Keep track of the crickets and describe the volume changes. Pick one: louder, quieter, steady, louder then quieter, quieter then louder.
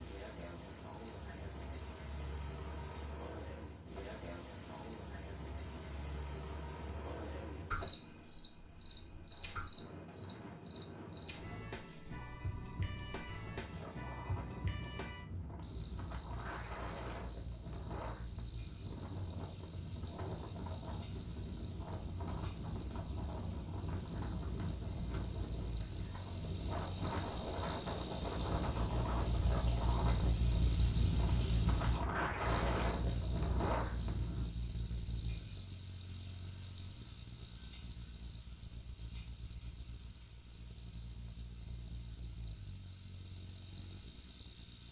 louder then quieter.